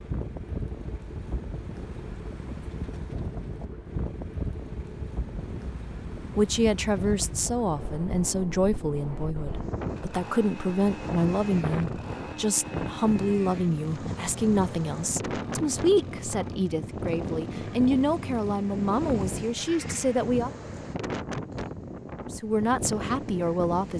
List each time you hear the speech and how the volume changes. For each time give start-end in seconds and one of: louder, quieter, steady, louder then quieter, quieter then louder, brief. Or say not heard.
6.3-20.5 steady
22.3-23.9 brief.